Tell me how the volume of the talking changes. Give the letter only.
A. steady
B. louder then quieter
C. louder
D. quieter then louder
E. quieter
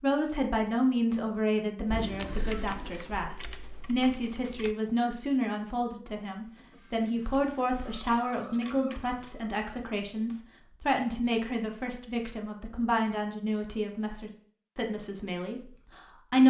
A.